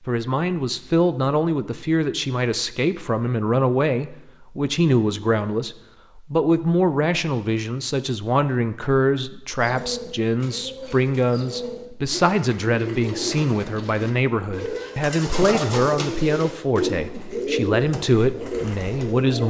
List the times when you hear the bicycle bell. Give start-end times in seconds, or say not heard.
not heard.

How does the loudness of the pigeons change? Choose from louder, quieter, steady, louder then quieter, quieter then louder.
louder.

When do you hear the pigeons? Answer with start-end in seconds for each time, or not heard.
9.6-19.4.